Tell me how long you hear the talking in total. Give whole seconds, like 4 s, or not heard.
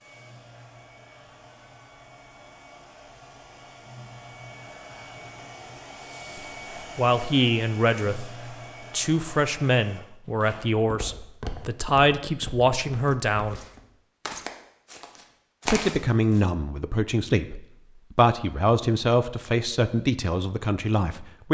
13 s.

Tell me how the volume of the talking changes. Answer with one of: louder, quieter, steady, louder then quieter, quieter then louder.
steady.